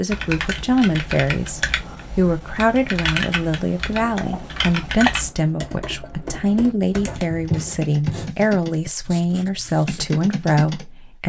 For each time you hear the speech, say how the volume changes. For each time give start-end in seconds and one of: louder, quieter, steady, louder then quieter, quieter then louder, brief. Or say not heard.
0.0-11.2 steady.